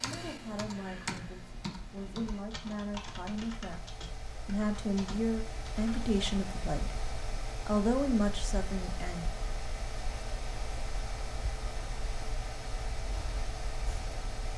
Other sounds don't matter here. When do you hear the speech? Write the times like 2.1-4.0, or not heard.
0.0-3.8, 4.5-7.0, 7.7-9.2.